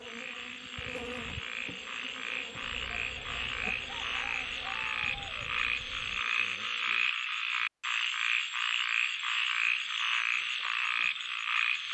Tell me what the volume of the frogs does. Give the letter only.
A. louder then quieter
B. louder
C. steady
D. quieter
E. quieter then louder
B.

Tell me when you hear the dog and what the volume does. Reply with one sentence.
The dog can't be heard in this clip.